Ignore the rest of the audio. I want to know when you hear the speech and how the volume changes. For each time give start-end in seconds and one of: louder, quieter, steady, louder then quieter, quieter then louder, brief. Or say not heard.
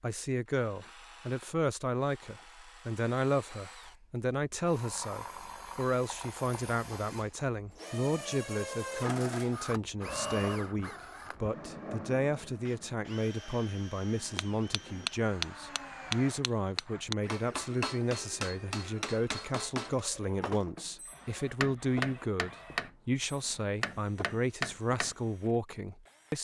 0.0-26.3 steady.